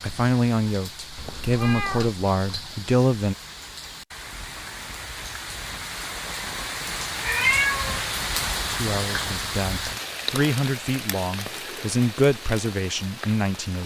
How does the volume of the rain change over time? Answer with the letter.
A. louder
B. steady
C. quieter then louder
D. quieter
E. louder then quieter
E.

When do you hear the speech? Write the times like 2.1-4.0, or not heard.
0.0-3.4, 8.7-13.8.